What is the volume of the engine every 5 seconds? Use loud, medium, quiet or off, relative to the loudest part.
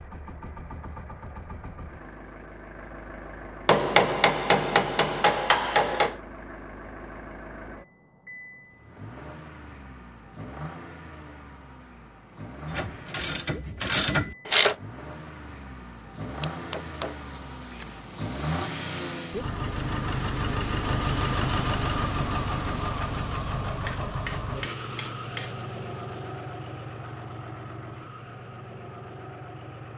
quiet, quiet, quiet, medium, loud, medium.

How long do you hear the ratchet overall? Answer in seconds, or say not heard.
2 s.